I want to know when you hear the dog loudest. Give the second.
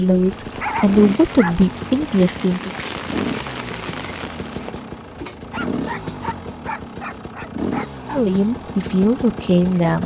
1 s.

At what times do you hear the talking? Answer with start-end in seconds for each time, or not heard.
0.0-2.7, 8.1-10.0.